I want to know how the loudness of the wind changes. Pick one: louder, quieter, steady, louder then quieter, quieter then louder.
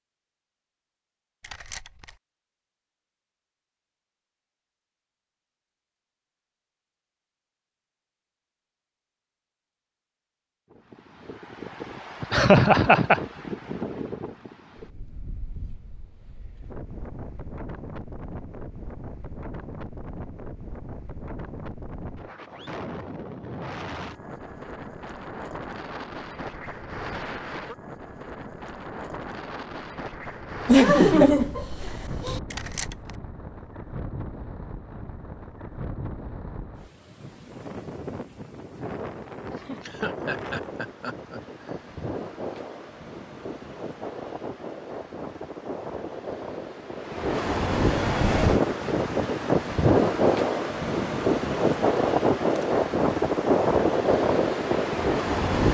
louder.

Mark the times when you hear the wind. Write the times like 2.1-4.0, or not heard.
10.7-55.6.